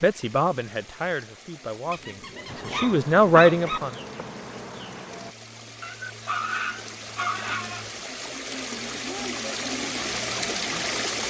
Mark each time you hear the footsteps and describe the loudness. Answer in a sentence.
The footsteps can't be heard in this clip.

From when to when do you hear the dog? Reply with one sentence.
You can hear the dog from 1.9 to 3.8 s and from 5.8 to 7.8 s.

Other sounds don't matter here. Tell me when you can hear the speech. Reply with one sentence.
The speech can be heard from 0.0 to 3.9 s.